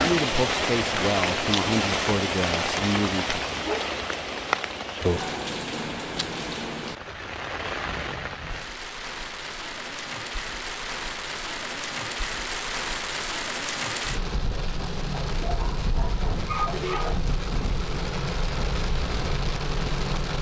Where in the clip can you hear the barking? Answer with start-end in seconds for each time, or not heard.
3.6-5.0, 15.1-17.1.